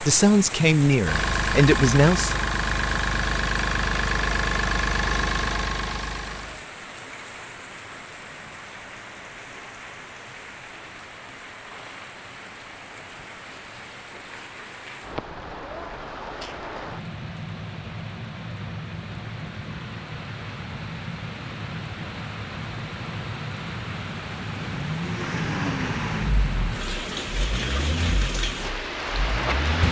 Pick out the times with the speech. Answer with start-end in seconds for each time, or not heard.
0.0-2.4.